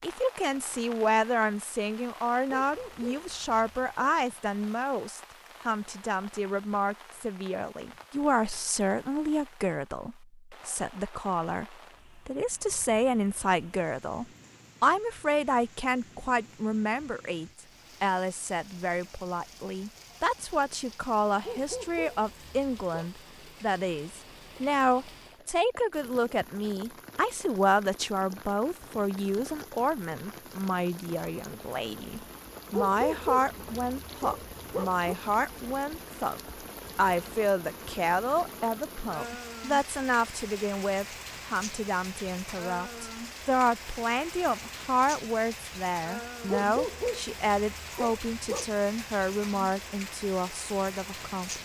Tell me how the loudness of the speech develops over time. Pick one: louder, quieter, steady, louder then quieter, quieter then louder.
steady.